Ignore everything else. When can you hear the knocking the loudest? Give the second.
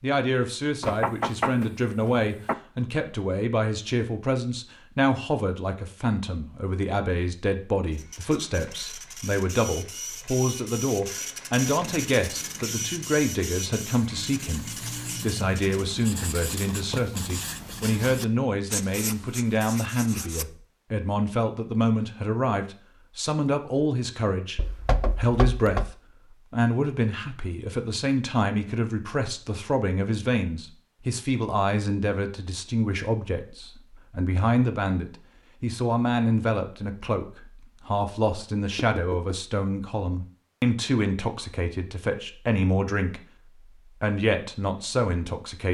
1 s.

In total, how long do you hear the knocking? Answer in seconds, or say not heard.
4 s.